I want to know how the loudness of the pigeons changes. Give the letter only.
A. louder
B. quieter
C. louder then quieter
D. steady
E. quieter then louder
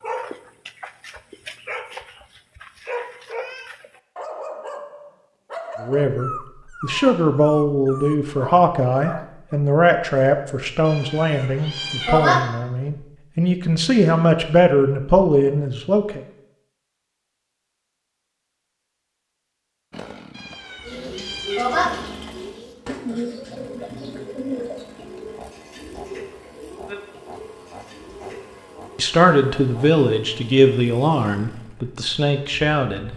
B.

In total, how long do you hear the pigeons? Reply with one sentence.
The pigeons can be heard for 8 seconds in total.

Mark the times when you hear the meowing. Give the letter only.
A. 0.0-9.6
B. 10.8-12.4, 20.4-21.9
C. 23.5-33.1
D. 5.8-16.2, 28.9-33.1
B.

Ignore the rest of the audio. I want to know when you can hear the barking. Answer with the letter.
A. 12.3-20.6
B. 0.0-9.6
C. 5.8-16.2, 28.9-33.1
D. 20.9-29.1
B.